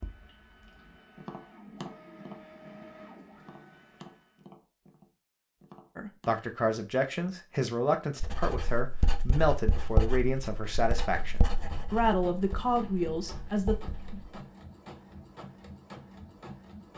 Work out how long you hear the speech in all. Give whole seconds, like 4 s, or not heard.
8 s.